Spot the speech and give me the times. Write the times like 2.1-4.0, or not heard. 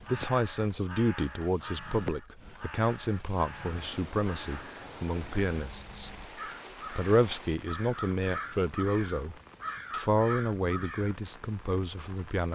0.1-6.2, 6.9-12.4.